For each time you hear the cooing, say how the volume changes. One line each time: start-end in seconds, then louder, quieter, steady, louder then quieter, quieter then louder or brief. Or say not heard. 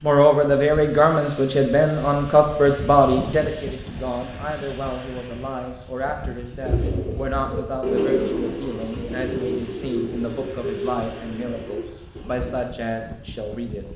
6.6-12.6 quieter.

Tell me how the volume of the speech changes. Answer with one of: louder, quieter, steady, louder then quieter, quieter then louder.
quieter.